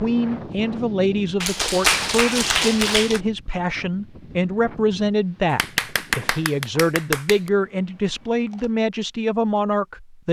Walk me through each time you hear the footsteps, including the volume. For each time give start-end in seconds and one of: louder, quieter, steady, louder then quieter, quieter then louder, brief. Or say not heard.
not heard.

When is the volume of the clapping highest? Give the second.
2 s.